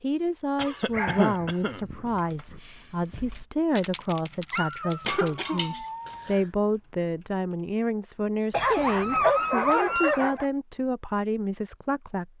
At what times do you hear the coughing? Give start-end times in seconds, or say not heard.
0.6-1.9, 5.0-6.4, 8.5-9.3.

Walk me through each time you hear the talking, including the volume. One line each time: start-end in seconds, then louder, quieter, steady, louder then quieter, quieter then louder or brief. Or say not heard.
0.0-12.3 steady.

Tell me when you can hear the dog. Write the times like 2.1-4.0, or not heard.
0.8-2.6, 4.5-6.3, 8.5-10.5.